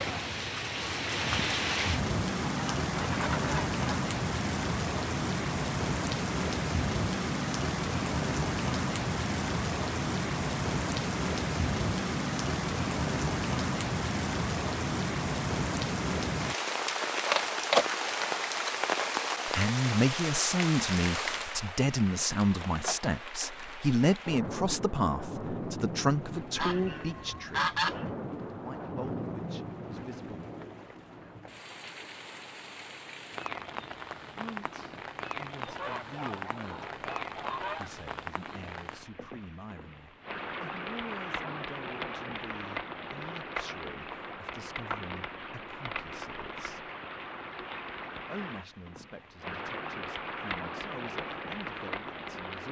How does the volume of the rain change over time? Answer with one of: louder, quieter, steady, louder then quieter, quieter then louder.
quieter.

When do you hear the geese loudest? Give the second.
28 s.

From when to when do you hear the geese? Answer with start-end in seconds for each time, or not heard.
2.5-3.8, 26.6-28.1, 35.6-37.9.